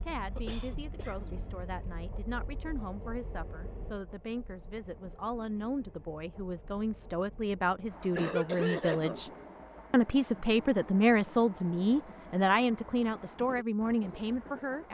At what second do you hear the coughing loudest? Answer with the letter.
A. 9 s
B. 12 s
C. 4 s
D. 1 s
A.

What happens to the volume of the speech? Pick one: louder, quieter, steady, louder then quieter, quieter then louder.
louder.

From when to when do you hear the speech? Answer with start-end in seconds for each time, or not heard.
0.0-9.3, 9.9-14.8.